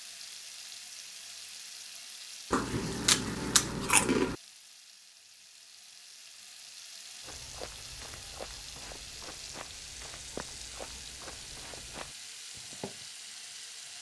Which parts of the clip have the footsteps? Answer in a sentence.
The footsteps can be heard from 7.2 to 13.1 s.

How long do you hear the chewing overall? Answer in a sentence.
You can hear the chewing for 2 seconds altogether.